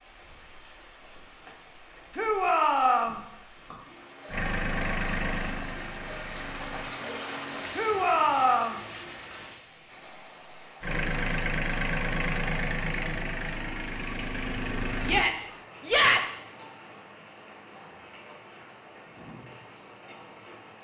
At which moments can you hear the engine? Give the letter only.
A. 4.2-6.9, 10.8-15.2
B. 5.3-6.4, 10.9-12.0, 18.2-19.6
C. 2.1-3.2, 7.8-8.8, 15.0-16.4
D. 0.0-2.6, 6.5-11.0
A.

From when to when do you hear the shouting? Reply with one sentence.
You can hear the shouting from 2.1 to 3.2 s, from 7.8 to 8.8 s and from 15.0 to 16.4 s.